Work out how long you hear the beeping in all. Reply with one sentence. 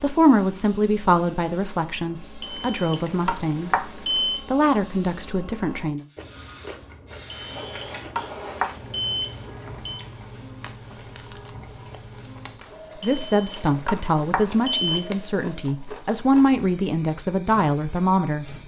You can hear the beeping for 7 seconds altogether.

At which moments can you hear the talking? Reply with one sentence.
You can hear the talking from 0.0 to 6.0 s and from 13.0 to 18.6 s.